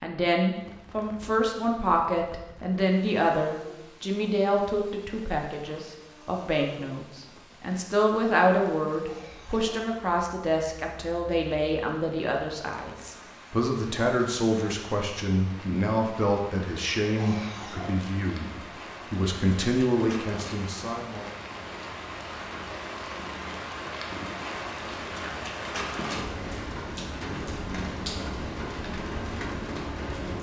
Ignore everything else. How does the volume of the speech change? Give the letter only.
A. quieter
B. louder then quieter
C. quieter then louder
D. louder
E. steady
E.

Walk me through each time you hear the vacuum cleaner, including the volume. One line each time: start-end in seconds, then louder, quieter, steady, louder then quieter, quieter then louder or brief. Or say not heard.
not heard.